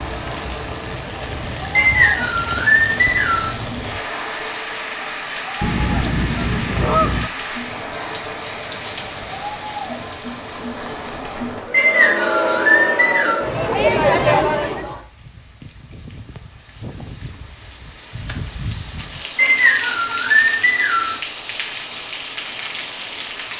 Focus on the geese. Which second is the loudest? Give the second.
7 s.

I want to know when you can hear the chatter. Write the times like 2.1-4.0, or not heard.
0.0-15.0.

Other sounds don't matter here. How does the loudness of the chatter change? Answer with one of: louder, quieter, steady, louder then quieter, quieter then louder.
louder.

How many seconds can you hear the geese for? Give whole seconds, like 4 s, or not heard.
2 s.